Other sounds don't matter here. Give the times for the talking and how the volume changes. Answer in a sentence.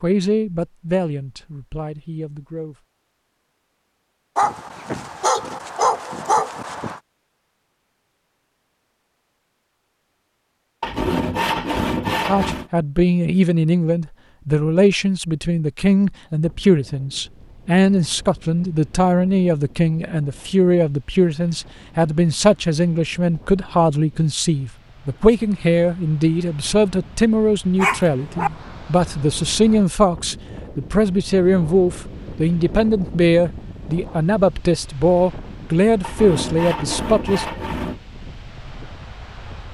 The talking can be heard briefly from 0.0 to 2.8 s; and from 12.2 to 37.5 s, at a steady volume.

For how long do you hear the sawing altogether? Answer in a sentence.
You can hear the sawing for 4 seconds altogether.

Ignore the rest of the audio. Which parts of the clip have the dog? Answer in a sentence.
The dog can be heard from 4.3 to 7.0 s and from 27.8 to 28.5 s.